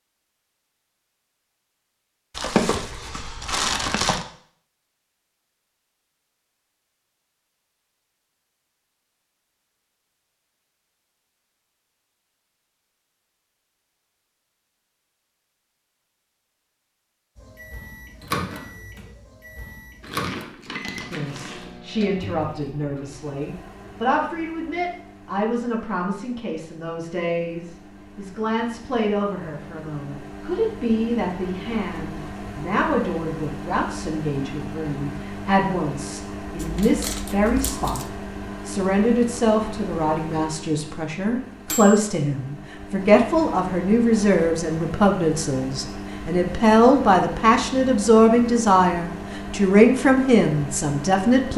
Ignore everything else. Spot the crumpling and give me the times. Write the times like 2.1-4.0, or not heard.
2.3-4.2, 20.0-21.8, 36.5-38.1.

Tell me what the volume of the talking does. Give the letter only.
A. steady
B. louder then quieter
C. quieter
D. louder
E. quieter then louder
D.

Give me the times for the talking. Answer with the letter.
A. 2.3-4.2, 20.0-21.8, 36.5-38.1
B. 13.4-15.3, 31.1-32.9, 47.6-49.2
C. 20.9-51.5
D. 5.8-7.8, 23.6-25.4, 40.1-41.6
C.